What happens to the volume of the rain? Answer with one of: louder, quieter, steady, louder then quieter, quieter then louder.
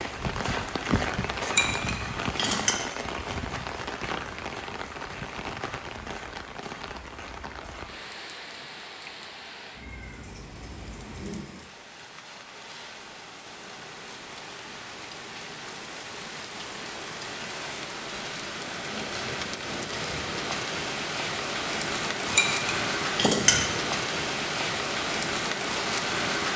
quieter then louder.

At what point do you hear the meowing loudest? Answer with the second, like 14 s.
11 s.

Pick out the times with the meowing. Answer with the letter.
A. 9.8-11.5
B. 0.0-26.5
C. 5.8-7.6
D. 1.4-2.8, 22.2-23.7
A.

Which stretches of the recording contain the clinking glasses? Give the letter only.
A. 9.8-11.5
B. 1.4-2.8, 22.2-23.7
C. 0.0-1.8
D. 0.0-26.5
B.